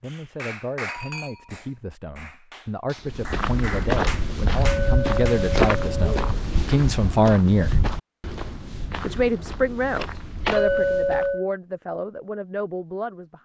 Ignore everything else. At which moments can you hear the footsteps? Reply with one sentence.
The footsteps can be heard from 3.0 to 11.3 s.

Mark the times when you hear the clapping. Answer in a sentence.
The clapping can be heard from 0.1 to 5.4 s.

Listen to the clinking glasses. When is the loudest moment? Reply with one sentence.
The loudest moment of the clinking glasses is at 11 seconds.